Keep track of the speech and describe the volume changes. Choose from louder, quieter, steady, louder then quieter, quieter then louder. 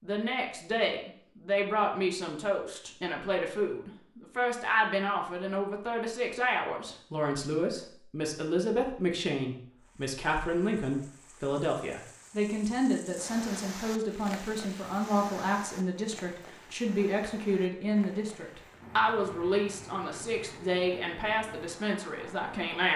steady.